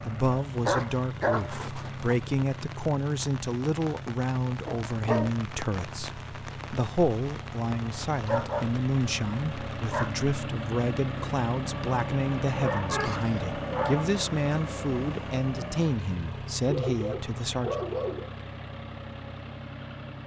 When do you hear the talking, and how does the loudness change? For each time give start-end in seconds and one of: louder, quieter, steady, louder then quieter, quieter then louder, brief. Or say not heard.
0.0-17.8 steady.